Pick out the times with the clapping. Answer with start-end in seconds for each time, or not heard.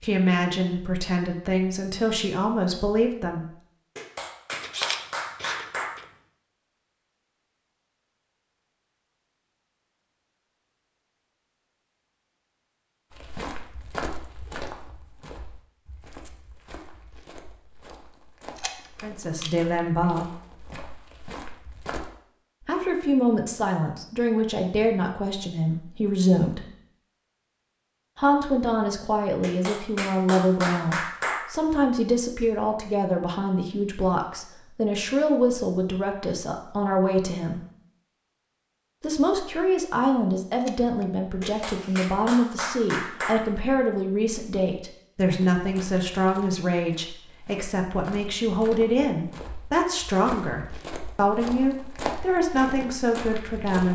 4.0-5.9, 29.4-31.4, 41.4-43.4.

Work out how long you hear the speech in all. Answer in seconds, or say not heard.
33 s.